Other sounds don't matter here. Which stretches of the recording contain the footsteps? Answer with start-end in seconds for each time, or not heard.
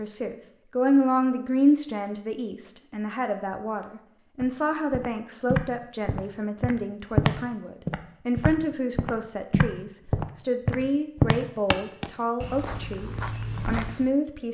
4.4-14.1.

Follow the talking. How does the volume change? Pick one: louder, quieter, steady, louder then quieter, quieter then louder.
quieter.